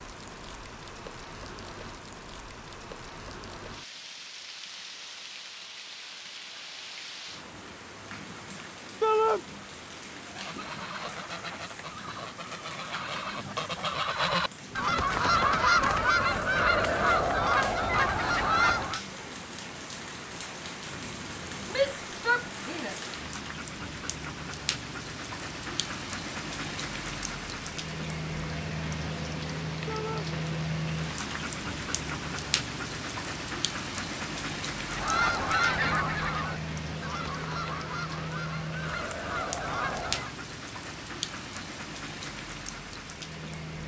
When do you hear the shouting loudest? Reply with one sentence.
The volume of the shouting peaks at 9 seconds.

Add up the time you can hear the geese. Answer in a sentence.
The geese can be heard for 14 seconds in total.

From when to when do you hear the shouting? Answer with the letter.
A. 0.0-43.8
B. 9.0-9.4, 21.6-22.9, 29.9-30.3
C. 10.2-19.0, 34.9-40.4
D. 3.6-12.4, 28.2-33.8
B.